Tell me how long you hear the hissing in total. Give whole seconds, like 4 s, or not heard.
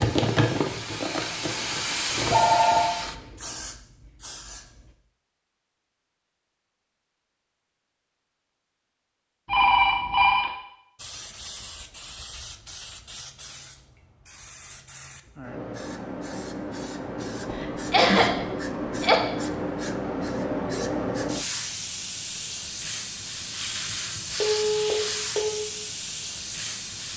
21 s.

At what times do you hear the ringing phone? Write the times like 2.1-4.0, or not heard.
2.1-2.9, 9.4-10.5, 24.4-25.6.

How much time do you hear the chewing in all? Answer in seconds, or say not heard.
3 s.